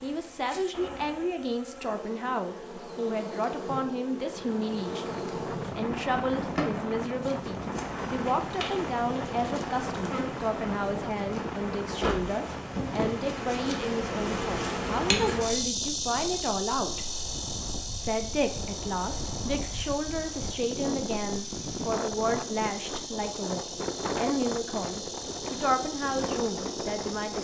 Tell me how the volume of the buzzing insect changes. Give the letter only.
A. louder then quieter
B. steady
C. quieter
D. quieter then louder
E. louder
A.